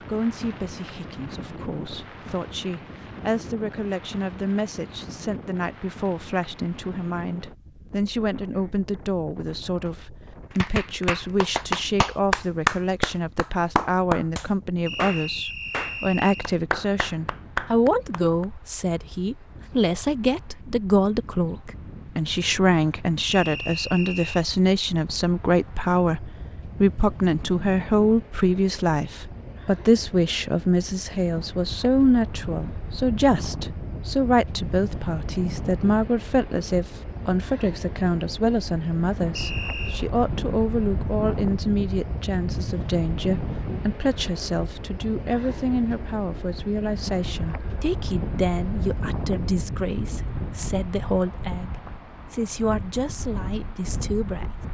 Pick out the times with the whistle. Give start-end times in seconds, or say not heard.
14.8-16.5, 23.2-24.4, 39.4-40.1.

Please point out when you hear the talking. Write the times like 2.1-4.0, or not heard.
0.1-54.5.